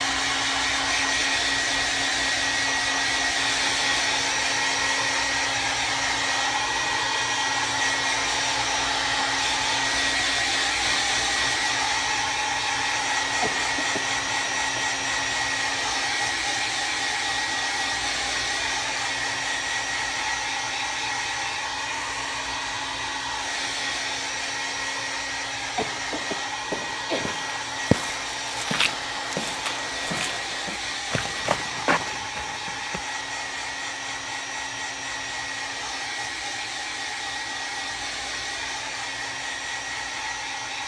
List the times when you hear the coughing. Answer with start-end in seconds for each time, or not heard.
13.4-14.6, 25.8-27.4.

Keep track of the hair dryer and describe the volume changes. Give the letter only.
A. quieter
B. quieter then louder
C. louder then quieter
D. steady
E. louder
A.